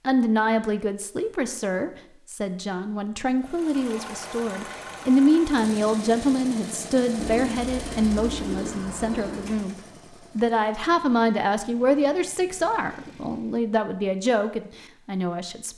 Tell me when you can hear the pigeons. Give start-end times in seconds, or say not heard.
7.2-9.6.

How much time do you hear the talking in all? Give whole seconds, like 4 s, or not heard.
15 s.